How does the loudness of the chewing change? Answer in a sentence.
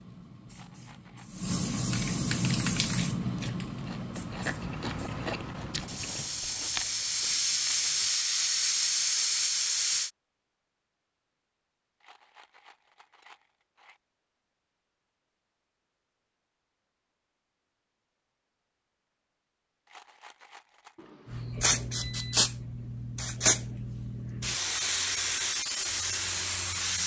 The volume of the chewing goes up, then down.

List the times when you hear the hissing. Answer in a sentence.
You can hear the hissing from 0.0 to 10.1 s and from 21.2 to 27.0 s.